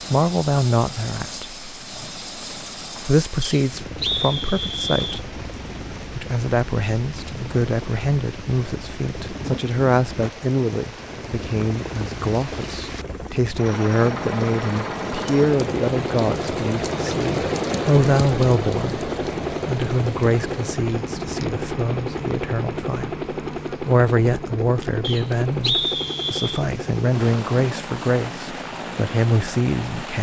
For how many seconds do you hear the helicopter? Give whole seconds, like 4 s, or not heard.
30 s.